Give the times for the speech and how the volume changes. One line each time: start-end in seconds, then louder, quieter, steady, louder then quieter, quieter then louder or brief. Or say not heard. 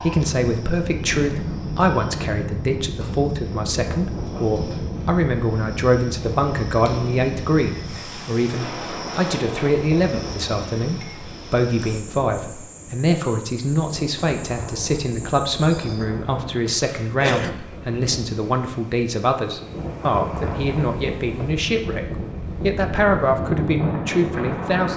0.0-24.9 steady.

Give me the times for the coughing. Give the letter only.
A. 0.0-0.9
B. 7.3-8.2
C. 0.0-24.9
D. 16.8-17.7
D.